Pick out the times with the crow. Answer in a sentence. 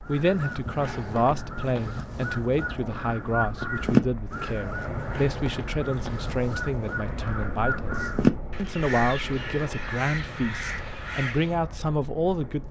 You can hear the crow from 0.0 to 11.6 s.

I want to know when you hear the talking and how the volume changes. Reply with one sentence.
The talking can be heard from 0.0 to 12.6 s, at a steady volume.